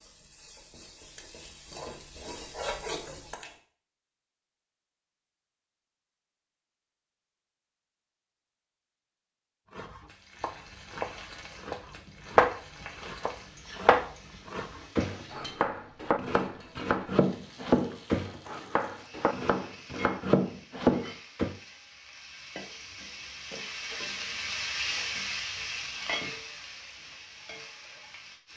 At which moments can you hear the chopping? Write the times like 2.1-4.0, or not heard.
9.7-21.6.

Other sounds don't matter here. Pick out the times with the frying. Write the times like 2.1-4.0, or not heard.
0.0-3.6, 10.1-28.5.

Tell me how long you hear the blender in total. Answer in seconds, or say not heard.
not heard.